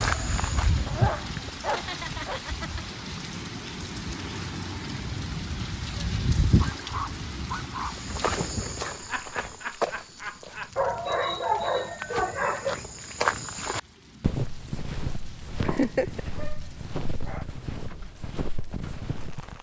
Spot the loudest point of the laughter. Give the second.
16 s.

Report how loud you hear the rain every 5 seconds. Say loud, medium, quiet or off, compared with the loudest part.
loud, loud, quiet, quiet.